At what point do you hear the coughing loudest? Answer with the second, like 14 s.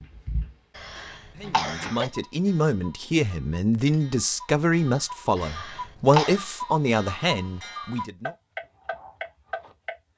6 s.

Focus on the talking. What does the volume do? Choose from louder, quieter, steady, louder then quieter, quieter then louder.
steady.